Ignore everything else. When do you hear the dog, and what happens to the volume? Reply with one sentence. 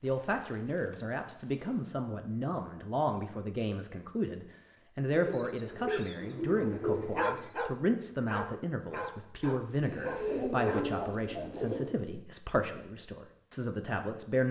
The dog can be heard from 5.8 to 11.1 s, getting louder then quieter.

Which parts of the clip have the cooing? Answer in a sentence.
The cooing can be heard from 0.0 to 1.9 s, from 5.1 to 7.5 s and from 9.8 to 11.9 s.